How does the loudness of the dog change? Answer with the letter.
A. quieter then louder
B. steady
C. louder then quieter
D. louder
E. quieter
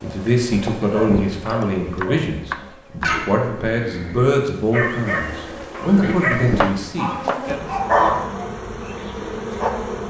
D.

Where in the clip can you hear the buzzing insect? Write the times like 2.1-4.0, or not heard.
0.0-10.0.